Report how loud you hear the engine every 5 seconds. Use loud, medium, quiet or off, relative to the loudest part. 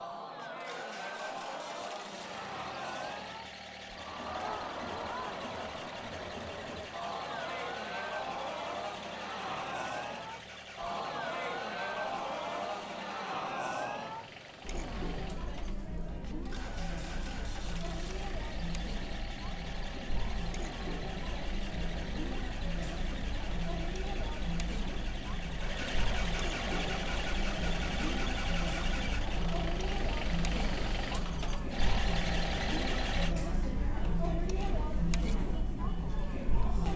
medium, medium, medium, medium, medium, loud, loud, off.